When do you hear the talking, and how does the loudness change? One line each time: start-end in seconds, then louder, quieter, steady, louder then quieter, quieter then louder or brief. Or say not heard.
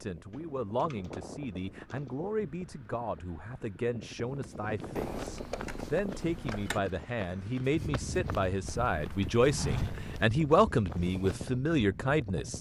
0.0-12.5 louder.